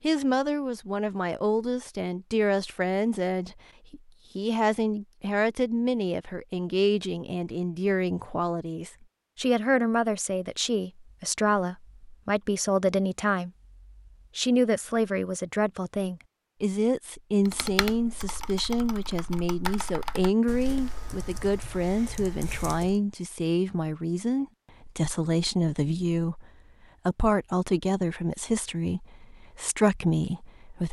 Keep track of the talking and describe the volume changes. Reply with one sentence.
The loudness of the talking stays about the same.